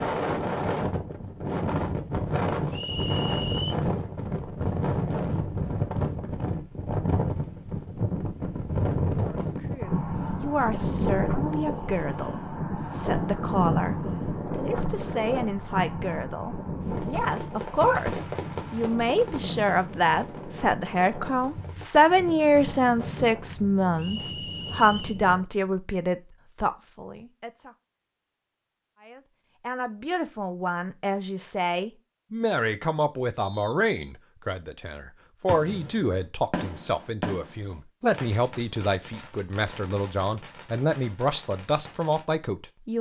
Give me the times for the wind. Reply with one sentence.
You can hear the wind from 0.0 to 25.4 s.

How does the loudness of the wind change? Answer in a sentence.
The volume of the wind goes down.